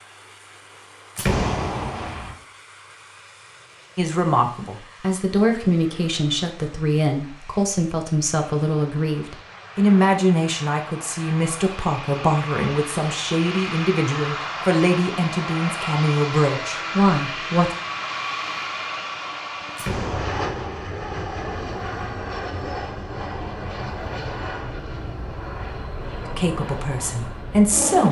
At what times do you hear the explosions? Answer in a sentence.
The explosions can be heard from 1.1 to 2.4 s and from 19.8 to 20.9 s.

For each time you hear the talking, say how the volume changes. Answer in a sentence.
You can hear the talking from 4.0 to 17.7 s, at a steady volume; and briefly from 26.4 to 28.0 s.